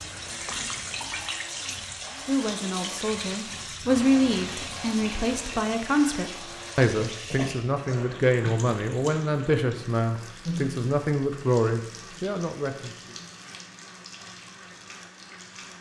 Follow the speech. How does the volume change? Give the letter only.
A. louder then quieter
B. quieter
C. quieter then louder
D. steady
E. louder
D.